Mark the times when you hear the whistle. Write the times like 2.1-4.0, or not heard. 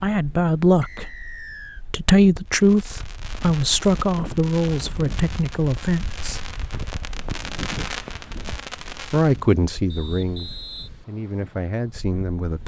0.8-1.9, 9.9-10.9.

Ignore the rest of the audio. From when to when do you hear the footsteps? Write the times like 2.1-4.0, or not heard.
not heard.